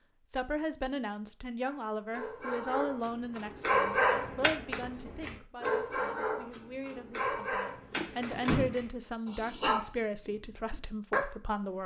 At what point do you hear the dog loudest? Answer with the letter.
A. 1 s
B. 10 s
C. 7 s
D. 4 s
D.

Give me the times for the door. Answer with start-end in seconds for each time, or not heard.
8.0-9.2.